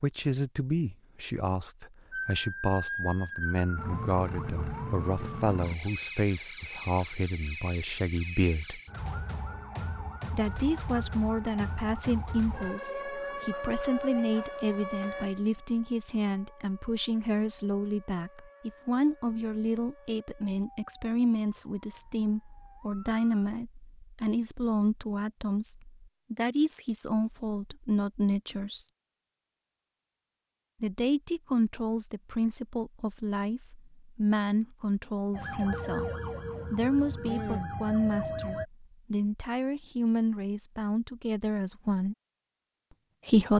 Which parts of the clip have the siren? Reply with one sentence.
The siren can be heard from 2.1 to 23.2 s and from 35.3 to 38.6 s.